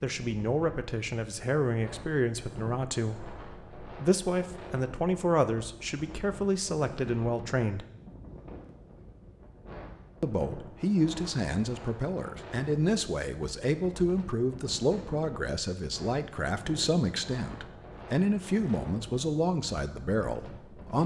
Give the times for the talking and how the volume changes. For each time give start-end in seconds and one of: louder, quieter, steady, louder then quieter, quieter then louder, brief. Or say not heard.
0.0-7.8 steady
10.2-21.0 steady.